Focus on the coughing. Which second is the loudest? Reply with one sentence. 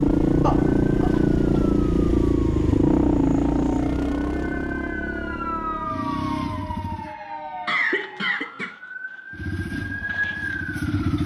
The loudest moment of the coughing is at 8 seconds.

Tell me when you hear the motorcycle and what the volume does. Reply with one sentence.
You can hear the motorcycle from 0.0 to 7.2 s, getting quieter; and briefly from 9.3 to 11.2 s.